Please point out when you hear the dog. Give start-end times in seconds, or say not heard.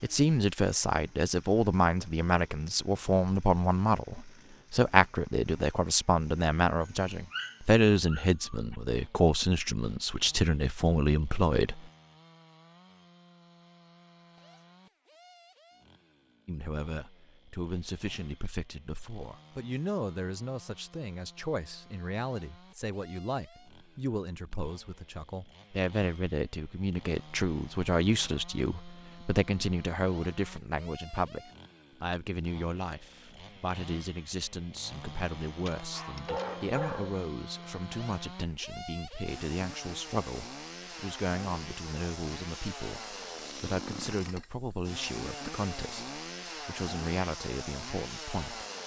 6.8-8.8, 35.6-37.2.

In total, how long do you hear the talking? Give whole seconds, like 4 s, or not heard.
44 s.